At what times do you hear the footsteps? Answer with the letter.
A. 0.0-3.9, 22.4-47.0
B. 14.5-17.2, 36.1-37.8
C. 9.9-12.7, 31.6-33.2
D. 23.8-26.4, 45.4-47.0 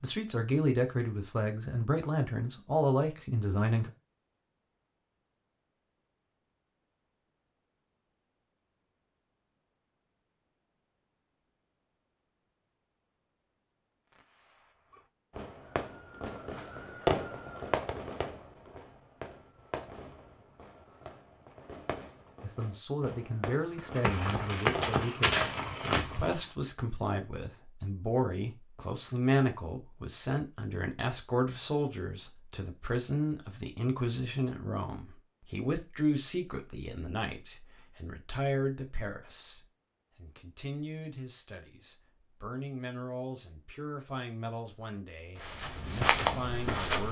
D.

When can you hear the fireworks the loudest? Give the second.
17 s.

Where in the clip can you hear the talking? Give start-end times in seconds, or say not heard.
0.0-3.9, 22.4-47.0.